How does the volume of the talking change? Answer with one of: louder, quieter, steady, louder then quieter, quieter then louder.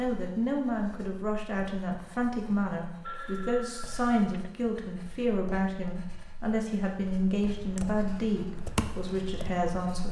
steady.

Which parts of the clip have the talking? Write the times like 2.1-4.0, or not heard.
0.0-10.0.